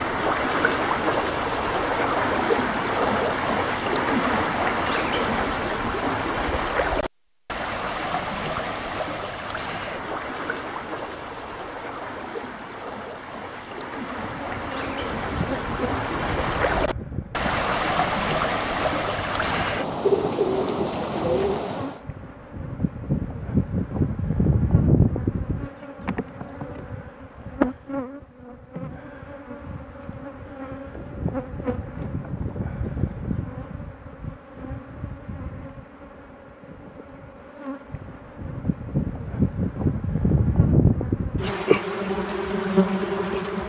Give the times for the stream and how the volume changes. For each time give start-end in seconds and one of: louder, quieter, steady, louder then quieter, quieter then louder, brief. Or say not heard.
0.0-22.1 quieter then louder.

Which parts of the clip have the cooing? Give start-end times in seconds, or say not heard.
20.0-21.7.